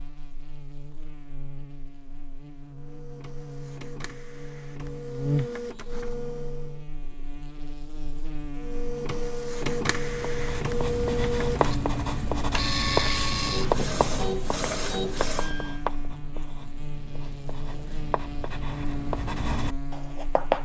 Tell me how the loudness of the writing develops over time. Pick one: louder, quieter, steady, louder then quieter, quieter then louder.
quieter then louder.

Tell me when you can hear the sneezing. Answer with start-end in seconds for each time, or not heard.
not heard.